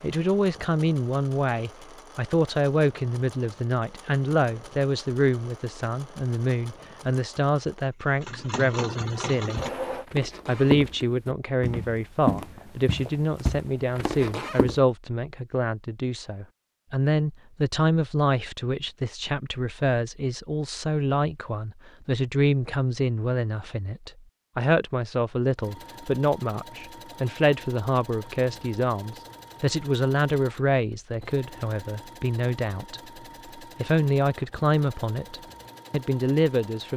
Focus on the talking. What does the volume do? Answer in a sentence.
The loudness of the talking stays about the same.